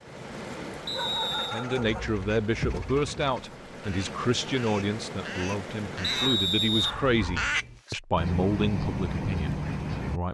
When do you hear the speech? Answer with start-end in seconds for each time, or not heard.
1.5-10.2.